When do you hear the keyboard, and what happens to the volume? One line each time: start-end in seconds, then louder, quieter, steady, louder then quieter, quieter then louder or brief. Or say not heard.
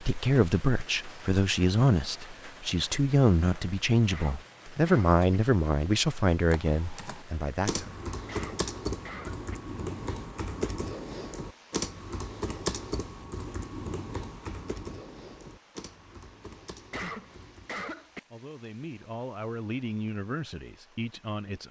6.5-17.9 quieter.